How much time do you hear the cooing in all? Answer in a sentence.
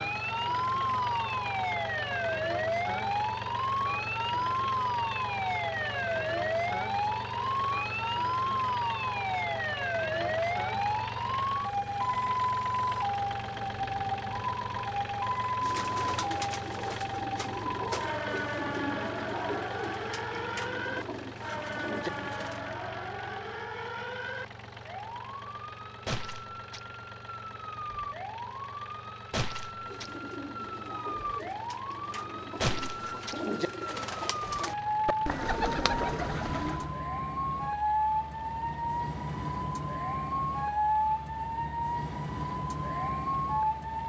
You can hear the cooing for 14 seconds altogether.